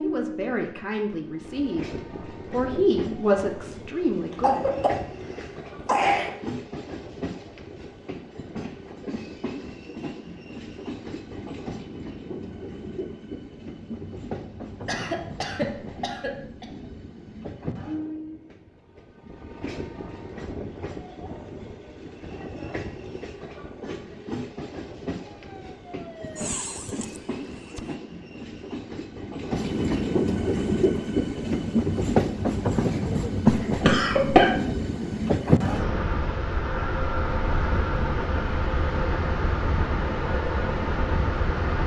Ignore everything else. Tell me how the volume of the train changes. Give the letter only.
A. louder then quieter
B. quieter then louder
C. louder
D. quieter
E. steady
C.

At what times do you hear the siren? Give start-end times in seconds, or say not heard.
25.2-27.9.